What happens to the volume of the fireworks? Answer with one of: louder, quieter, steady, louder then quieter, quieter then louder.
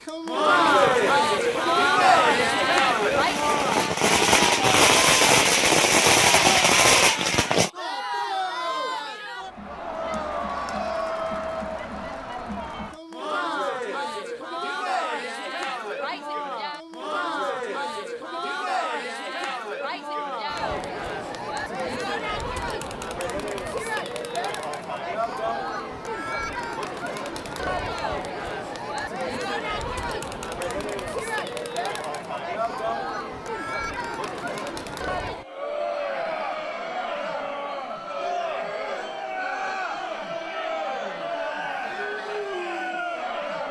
louder.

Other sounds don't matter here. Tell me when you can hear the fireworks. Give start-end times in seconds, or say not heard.
0.5-7.7.